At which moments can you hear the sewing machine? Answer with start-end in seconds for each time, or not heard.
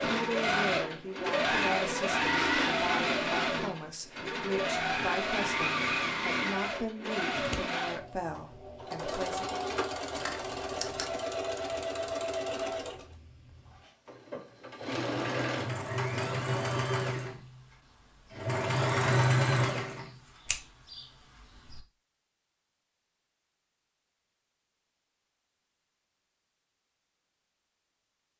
0.0-21.8.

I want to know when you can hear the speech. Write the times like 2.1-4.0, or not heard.
0.1-9.6.